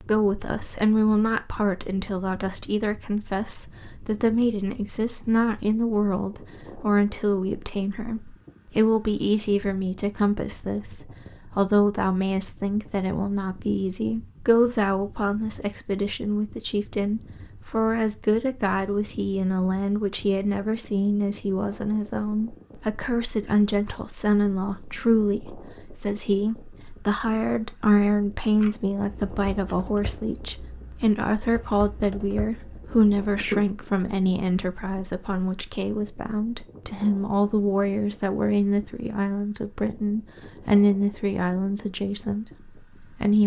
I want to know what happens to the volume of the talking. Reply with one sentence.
The loudness of the talking stays about the same.